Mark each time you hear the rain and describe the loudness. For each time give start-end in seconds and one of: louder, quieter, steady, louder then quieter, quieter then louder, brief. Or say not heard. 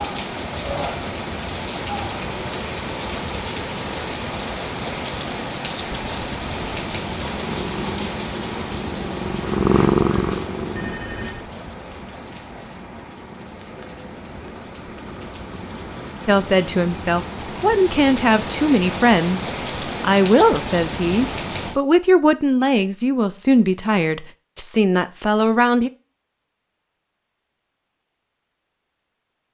0.0-21.8 quieter then louder.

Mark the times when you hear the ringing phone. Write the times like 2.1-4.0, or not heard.
10.8-11.4.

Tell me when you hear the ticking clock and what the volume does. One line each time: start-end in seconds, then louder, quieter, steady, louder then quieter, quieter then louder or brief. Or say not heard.
not heard.